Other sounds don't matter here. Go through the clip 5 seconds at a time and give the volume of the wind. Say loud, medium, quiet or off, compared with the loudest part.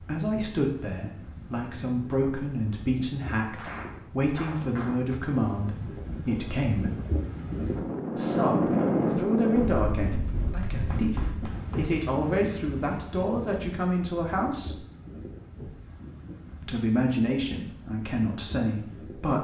quiet, loud, medium, quiet.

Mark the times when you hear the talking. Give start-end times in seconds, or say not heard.
0.0-6.9, 8.2-14.8, 16.6-19.4.